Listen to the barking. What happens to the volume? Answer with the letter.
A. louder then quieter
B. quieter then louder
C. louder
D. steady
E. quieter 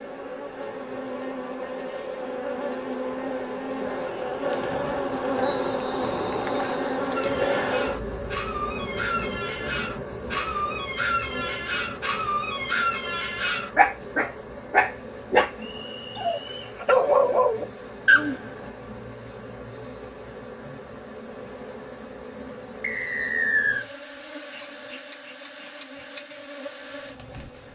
C.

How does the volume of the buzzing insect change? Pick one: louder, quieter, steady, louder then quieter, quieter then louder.
quieter.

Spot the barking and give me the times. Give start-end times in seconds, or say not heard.
7.2-18.7.